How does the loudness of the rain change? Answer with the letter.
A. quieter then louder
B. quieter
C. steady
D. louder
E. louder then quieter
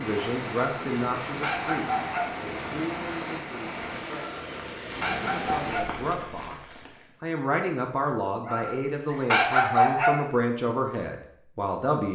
C.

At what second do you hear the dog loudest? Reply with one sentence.
The volume of the dog peaks at 10 seconds.